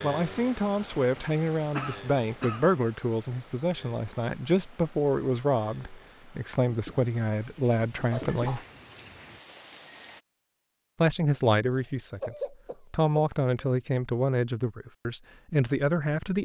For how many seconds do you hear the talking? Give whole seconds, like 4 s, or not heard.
14 s.